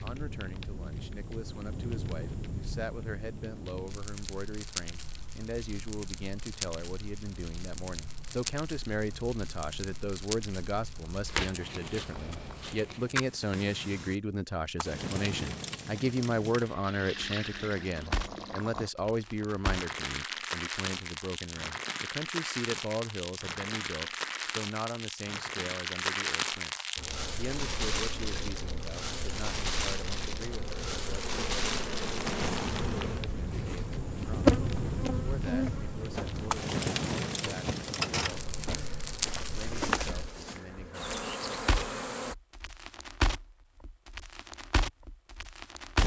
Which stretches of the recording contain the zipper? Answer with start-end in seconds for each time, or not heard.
not heard.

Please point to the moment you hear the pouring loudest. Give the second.
17 s.